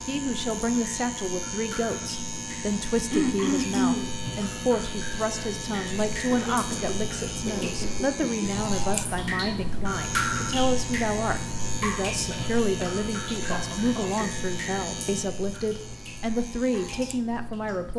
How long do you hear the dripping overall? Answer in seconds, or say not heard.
18 s.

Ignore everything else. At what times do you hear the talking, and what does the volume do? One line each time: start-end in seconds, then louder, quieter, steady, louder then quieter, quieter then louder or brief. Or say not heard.
0.1-17.9 steady.